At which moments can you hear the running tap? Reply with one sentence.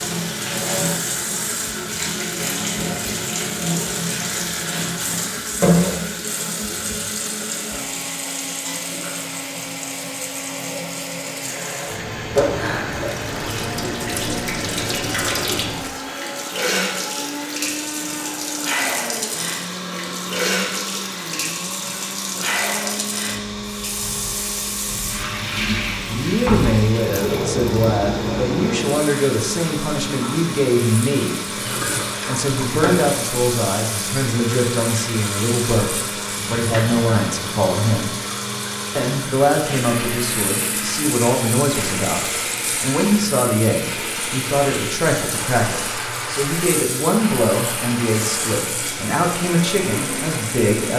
The running tap can be heard from 0.0 to 50.9 s.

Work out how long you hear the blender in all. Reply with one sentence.
You can hear the blender for 51 seconds altogether.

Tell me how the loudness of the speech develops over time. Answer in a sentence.
The loudness of the speech stays about the same.